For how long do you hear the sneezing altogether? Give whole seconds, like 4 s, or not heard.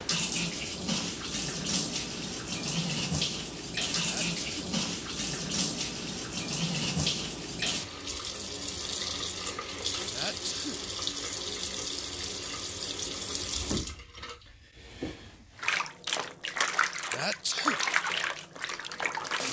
2 s.